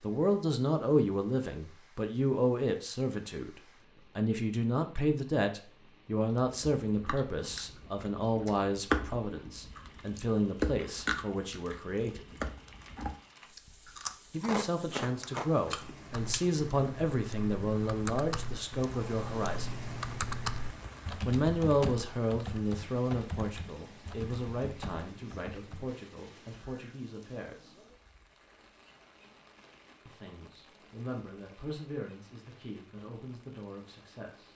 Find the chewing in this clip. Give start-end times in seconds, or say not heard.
6.3-16.6.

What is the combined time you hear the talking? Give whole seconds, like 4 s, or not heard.
29 s.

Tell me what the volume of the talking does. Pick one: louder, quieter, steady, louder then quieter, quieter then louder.
quieter.